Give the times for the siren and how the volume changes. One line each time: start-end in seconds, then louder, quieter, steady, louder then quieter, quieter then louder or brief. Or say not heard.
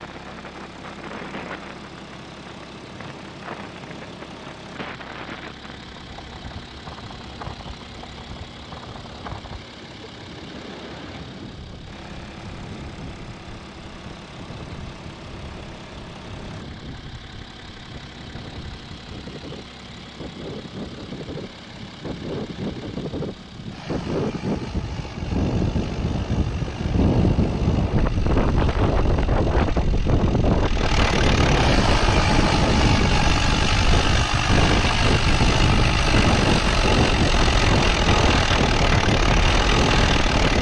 not heard.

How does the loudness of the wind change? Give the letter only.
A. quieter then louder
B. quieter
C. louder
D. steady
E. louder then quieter
C.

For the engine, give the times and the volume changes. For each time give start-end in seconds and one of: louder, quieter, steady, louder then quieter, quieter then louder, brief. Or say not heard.
0.0-40.5 louder.